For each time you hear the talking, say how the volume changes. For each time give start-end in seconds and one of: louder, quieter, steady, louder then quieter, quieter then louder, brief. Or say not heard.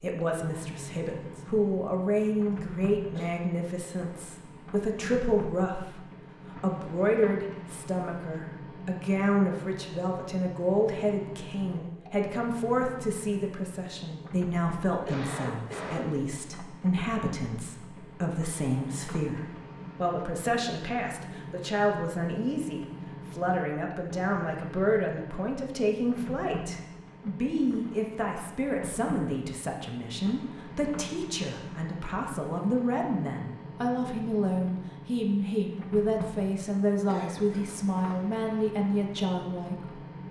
0.0-40.0 steady.